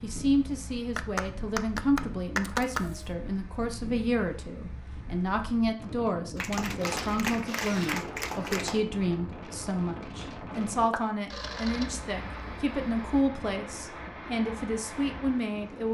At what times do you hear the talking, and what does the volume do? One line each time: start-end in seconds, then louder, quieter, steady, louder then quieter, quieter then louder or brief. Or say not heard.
0.0-15.8 steady.